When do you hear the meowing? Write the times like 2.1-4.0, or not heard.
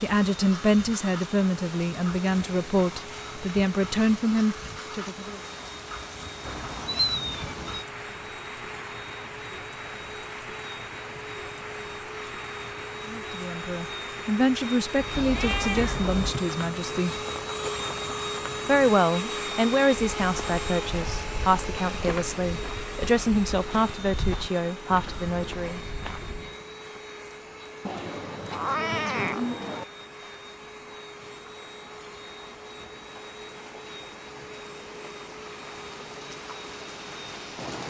6.5-7.8, 14.9-16.4, 27.9-29.9.